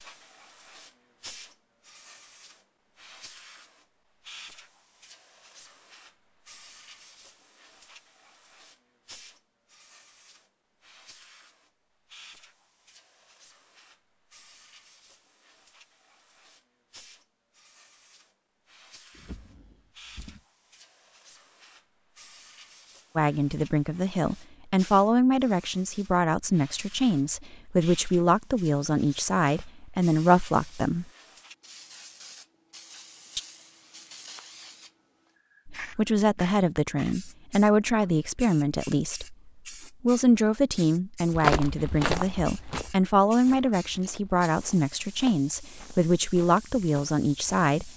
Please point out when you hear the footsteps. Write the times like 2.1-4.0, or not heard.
41.3-47.7.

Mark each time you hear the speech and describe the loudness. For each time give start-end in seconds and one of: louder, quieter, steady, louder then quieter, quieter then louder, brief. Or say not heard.
23.1-31.1 steady
35.6-47.9 steady.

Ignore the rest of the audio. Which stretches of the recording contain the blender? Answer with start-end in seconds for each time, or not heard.
not heard.